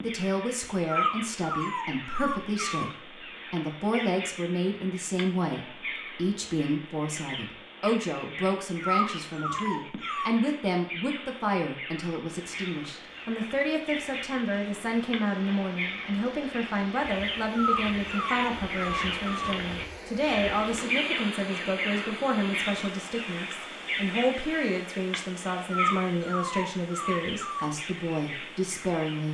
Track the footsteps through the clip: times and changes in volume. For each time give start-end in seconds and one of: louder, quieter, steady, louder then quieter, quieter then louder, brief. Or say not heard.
not heard.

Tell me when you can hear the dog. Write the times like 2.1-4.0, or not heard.
0.8-2.9, 8.8-10.3, 17.6-19.6, 25.7-27.7.